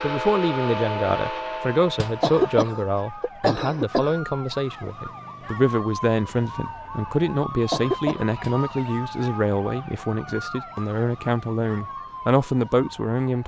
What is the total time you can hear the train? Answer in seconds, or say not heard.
3 s.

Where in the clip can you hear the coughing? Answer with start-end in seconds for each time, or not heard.
2.2-4.2, 7.7-8.3.